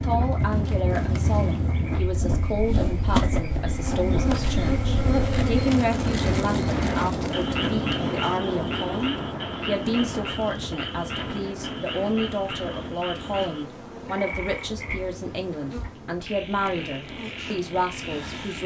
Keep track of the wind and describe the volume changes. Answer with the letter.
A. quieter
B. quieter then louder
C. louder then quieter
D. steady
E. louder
A.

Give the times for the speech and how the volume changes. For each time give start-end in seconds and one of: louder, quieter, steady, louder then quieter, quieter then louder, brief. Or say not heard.
0.0-18.6 steady.